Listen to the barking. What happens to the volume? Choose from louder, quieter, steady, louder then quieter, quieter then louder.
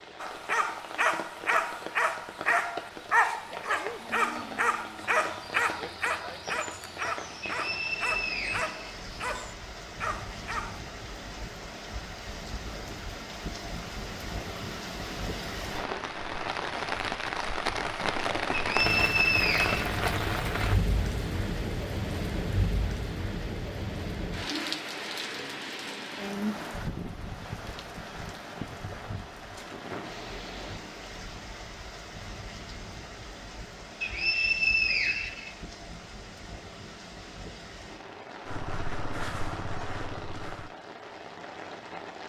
quieter.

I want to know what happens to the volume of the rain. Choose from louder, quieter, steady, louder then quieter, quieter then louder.
louder then quieter.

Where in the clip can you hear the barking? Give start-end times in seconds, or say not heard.
0.2-10.8.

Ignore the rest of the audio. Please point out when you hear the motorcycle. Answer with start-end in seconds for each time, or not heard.
38.5-40.7.